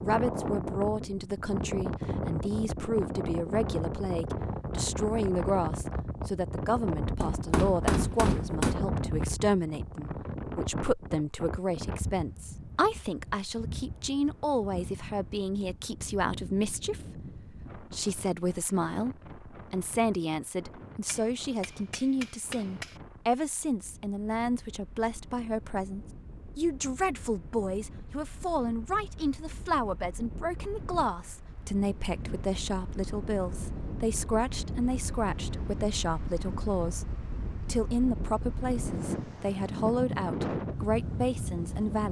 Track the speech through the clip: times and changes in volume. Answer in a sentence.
The speech can be heard from 0.0 to 42.0 s, at a steady volume.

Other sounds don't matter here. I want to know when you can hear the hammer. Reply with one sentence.
The hammer can be heard from 7.2 to 8.8 s and from 21.1 to 23.0 s.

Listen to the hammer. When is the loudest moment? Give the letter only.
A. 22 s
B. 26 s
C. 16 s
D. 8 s
D.